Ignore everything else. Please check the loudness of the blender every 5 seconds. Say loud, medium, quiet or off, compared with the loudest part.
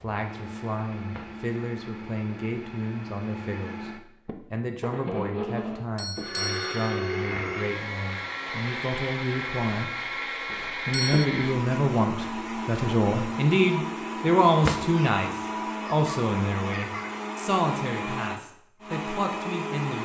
medium, loud, loud, loud.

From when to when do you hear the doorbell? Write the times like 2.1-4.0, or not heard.
5.5-7.2, 10.5-11.2.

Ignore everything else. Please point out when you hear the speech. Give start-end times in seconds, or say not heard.
0.0-9.9, 10.8-20.0.